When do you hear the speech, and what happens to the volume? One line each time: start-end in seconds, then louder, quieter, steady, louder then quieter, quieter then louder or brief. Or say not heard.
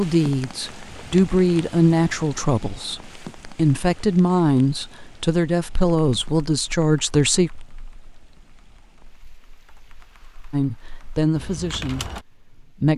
0.0-7.5 steady
10.5-12.9 brief.